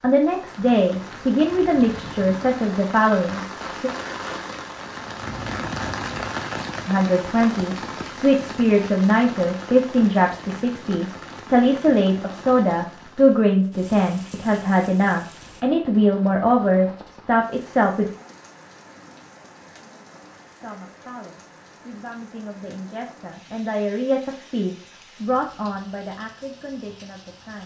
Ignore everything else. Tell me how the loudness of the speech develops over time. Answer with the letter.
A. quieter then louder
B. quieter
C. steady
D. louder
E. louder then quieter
B.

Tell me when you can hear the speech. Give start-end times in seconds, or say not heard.
0.0-3.9, 6.8-18.1, 20.6-27.6.